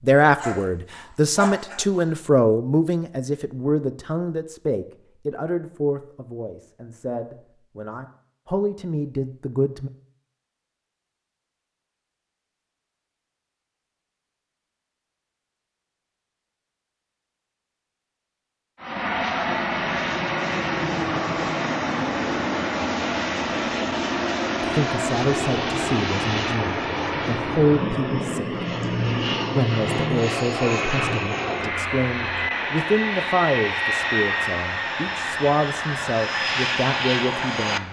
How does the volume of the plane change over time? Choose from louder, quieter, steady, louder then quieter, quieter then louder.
steady.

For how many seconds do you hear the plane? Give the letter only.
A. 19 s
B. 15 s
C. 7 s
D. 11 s
A.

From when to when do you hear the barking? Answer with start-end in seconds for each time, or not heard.
0.2-2.1.